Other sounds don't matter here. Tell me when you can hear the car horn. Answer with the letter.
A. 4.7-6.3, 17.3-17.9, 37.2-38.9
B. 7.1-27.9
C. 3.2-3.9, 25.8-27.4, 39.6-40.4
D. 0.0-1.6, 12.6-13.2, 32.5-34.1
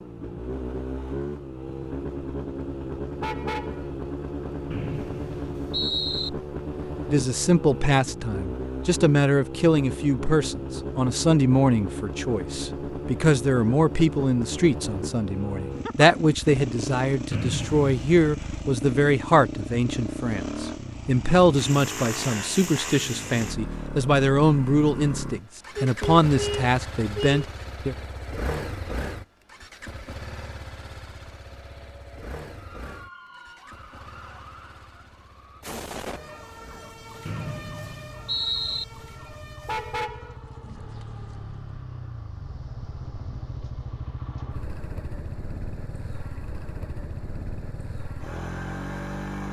C.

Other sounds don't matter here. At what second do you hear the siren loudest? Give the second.
36 s.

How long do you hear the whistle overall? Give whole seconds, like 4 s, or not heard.
4 s.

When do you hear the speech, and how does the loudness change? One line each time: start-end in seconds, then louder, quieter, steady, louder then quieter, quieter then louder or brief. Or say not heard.
7.1-27.9 steady.